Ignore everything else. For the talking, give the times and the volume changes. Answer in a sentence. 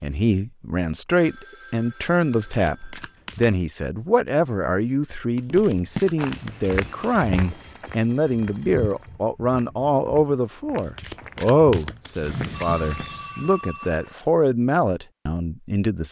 You can hear the talking from 0.0 to 16.0 s, at a steady volume.